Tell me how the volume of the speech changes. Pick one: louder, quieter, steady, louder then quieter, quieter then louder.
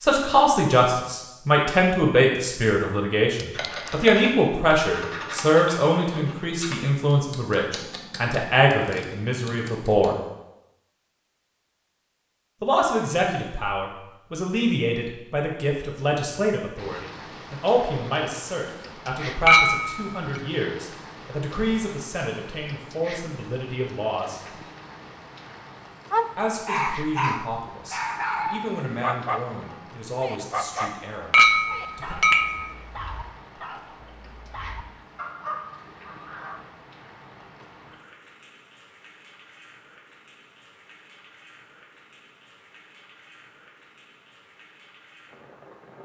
quieter.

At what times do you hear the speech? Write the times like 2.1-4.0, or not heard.
0.0-10.2, 12.6-24.4, 26.4-32.1.